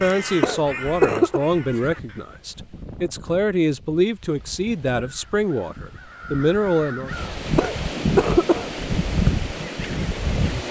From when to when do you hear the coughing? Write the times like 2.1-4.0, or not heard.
0.4-1.4, 7.5-8.7.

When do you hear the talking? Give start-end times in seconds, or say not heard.
0.0-7.1.